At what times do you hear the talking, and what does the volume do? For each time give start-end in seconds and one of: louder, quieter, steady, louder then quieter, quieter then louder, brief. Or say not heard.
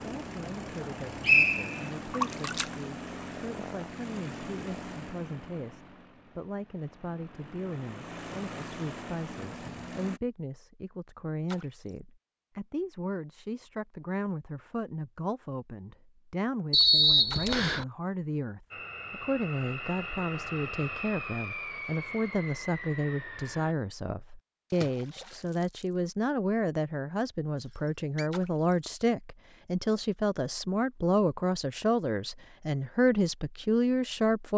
0.0-34.5 louder.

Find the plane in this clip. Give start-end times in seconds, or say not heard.
0.0-10.2, 18.7-23.8.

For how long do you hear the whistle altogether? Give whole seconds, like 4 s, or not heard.
3 s.